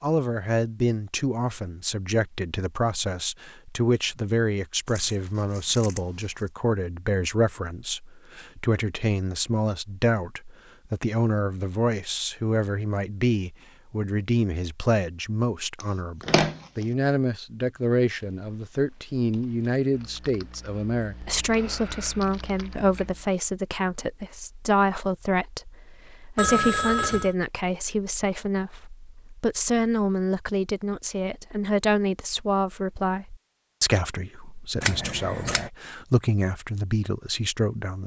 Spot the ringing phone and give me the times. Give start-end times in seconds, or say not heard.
26.4-27.4.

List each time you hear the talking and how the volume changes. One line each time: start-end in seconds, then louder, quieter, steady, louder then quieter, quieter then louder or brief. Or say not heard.
0.0-38.0 steady.